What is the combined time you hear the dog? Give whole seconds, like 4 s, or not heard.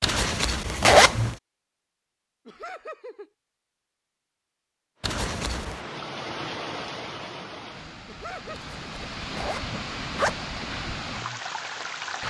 not heard.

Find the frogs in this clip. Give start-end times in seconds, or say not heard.
not heard.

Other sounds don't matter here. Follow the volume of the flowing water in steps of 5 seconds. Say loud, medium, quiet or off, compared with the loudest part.
off, loud, loud.